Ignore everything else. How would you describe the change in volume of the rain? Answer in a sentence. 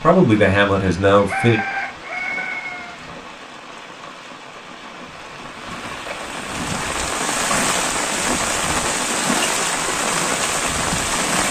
The loudness of the rain goes up.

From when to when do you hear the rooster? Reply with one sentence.
The rooster can be heard from 1.1 to 3.0 s.